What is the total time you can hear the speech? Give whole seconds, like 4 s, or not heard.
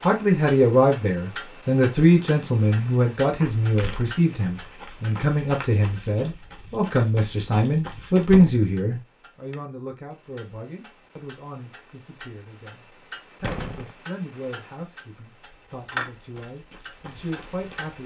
18 s.